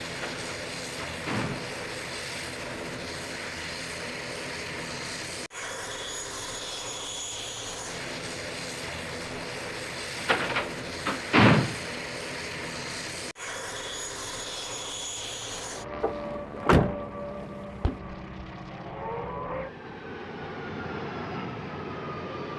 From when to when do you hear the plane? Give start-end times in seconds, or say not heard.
0.0-22.5.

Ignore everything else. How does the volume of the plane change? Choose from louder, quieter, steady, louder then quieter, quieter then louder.
steady.